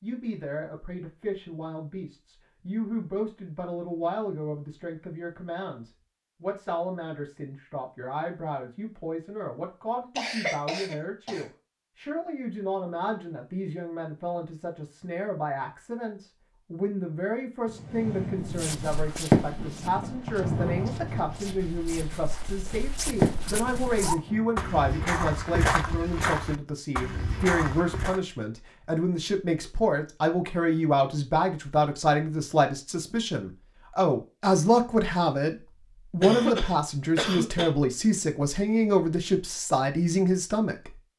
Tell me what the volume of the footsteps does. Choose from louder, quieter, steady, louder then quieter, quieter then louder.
louder.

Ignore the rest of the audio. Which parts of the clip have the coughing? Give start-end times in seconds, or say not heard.
10.2-11.4, 36.2-37.7.